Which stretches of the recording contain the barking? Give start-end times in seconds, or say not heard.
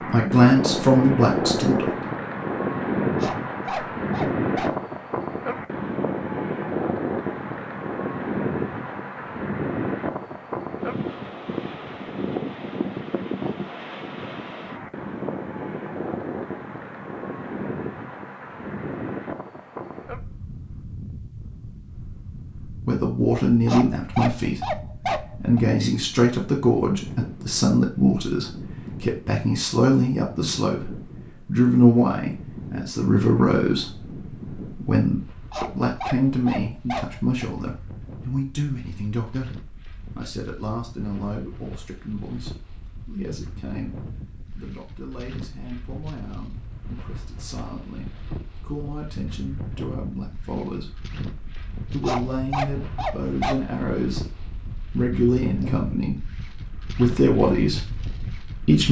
3.1-4.8, 23.6-25.6, 35.5-37.5, 52.0-53.6.